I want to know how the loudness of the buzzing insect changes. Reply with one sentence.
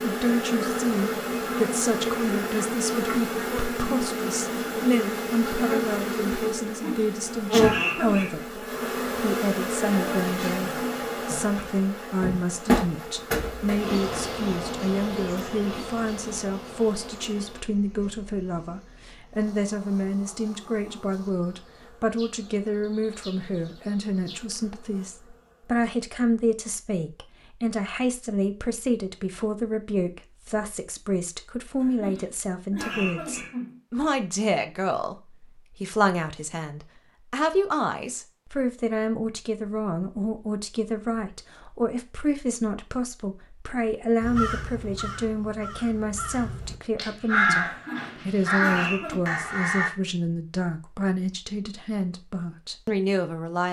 The loudness of the buzzing insect goes down.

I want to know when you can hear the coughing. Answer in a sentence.
You can hear the coughing from 6.7 to 8.4 s, from 31.8 to 33.8 s and from 47.6 to 49.2 s.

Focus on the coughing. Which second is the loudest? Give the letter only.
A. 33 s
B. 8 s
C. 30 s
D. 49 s
B.